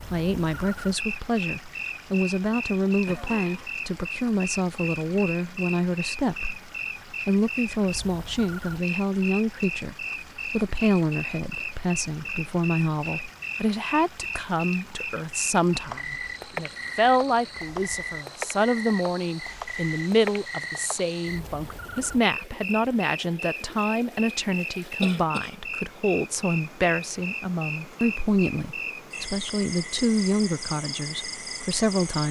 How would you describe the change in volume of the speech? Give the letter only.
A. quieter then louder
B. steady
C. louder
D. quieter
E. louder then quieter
B.